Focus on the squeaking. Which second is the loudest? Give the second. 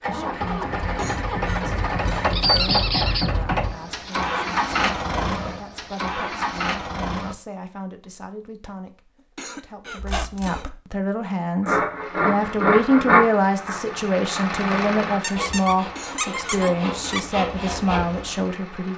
3 s.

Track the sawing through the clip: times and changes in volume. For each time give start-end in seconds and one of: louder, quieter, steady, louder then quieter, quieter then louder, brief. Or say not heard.
11.6-18.4 quieter then louder.